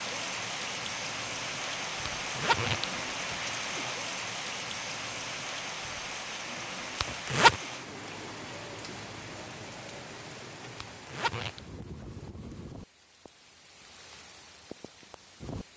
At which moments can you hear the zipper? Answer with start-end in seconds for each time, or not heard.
2.1-3.5, 7.0-7.5, 10.8-11.6.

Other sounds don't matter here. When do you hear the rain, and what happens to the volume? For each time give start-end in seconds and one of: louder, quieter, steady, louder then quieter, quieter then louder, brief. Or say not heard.
0.0-15.7 quieter.